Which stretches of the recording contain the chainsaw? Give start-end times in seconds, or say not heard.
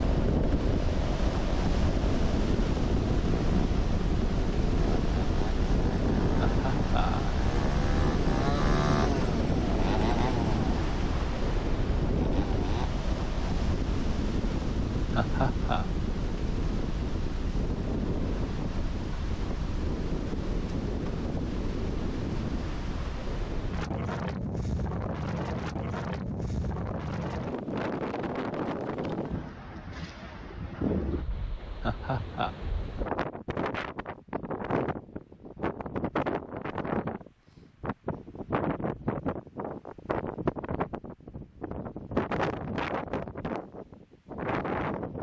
0.0-12.9.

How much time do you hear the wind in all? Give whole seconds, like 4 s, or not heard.
45 s.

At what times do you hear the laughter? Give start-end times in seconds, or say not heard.
6.3-7.4, 15.1-15.8, 31.8-32.5.